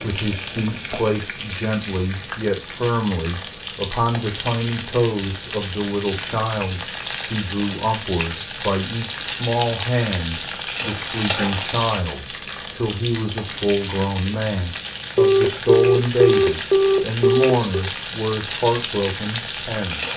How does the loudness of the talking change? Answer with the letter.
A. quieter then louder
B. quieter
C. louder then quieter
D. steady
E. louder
D.